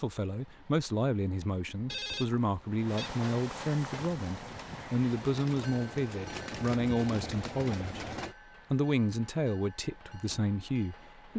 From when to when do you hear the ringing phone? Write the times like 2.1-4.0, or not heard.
1.9-3.1.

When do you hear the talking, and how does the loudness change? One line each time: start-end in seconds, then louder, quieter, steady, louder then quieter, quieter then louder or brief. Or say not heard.
0.0-8.1 steady
8.7-11.3 brief.